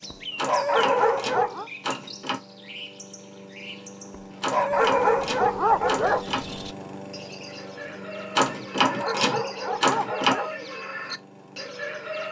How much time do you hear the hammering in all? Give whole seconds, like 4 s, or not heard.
not heard.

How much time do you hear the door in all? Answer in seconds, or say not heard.
6 s.